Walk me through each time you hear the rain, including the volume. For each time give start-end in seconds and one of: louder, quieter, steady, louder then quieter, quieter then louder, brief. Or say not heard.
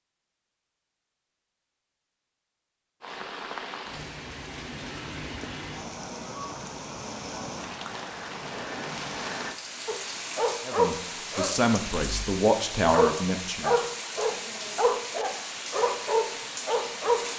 3.0-17.3 steady.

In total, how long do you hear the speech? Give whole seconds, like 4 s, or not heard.
3 s.